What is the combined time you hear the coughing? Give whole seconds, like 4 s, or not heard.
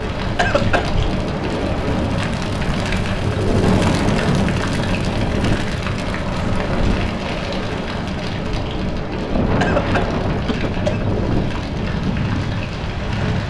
2 s.